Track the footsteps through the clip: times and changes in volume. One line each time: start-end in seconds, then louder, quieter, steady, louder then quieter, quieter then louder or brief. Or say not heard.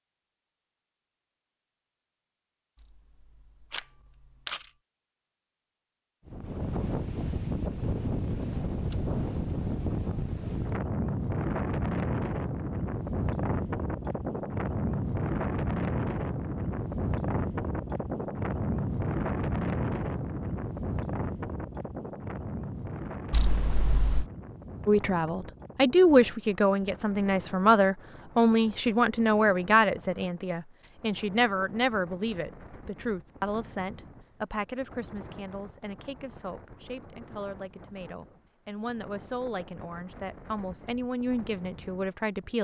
not heard.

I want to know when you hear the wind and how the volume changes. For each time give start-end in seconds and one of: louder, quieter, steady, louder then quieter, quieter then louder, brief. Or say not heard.
6.2-42.5 quieter.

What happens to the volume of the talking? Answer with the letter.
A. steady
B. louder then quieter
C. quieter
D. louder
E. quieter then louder
E.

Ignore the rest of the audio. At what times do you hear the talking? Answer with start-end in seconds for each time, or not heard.
24.9-42.5.